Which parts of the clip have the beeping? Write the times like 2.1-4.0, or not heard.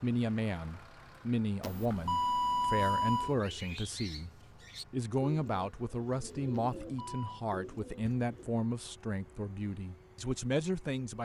1.6-3.4, 6.8-7.5.